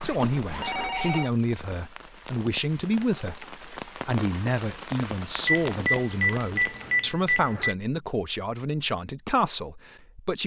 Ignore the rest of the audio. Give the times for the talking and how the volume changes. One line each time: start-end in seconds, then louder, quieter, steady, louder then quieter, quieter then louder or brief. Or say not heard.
0.0-10.4 steady.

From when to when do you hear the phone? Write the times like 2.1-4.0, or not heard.
0.0-1.3, 5.5-7.8.